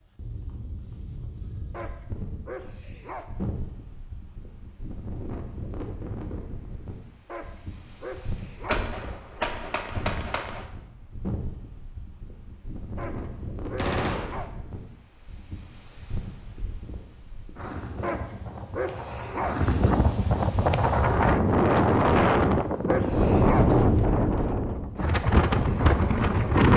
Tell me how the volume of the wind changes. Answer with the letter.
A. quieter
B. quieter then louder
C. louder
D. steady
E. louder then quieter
C.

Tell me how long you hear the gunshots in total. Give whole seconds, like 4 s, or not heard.
3 s.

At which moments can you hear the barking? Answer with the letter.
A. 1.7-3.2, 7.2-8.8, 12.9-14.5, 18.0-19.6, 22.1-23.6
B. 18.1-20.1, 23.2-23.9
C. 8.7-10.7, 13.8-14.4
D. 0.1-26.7
A.